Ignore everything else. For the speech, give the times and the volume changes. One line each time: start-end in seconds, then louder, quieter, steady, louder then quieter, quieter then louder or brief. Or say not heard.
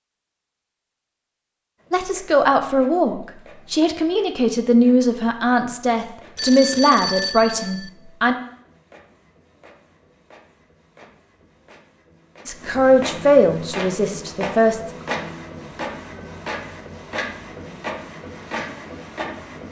1.9-8.3 steady
12.4-14.9 brief.